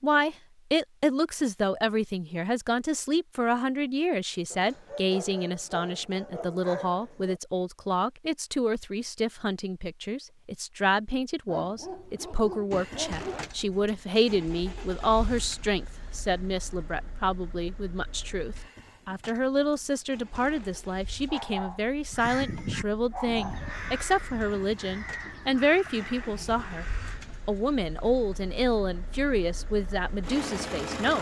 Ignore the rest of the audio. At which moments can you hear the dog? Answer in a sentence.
You can hear the dog from 4.5 to 7.4 s, from 11.4 to 13.5 s, from 21.2 to 21.9 s and from 22.6 to 23.8 s.